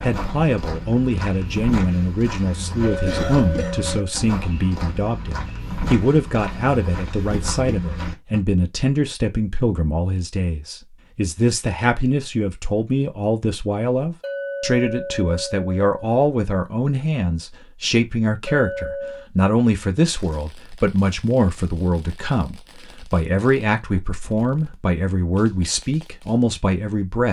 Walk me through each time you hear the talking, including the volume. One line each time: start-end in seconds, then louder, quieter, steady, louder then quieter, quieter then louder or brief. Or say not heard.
0.0-27.2 steady.